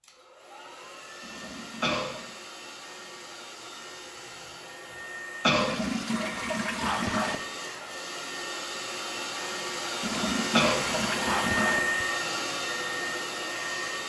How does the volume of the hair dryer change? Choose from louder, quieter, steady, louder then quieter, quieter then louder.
louder.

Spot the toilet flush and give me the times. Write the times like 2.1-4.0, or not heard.
1.2-2.4, 5.5-7.4, 10.0-12.1.